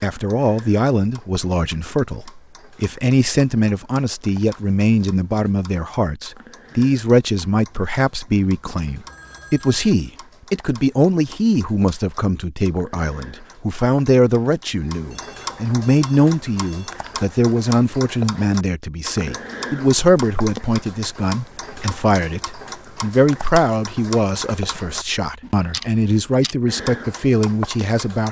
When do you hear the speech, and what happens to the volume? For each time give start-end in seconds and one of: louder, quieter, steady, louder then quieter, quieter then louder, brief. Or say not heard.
0.0-28.2 steady.